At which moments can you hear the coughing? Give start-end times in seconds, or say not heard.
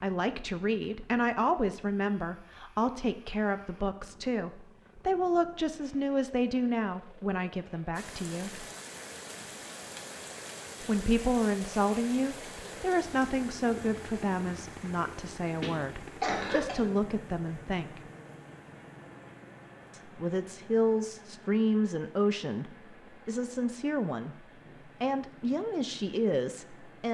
15.6-16.9.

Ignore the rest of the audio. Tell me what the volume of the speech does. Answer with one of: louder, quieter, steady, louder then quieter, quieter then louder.
steady.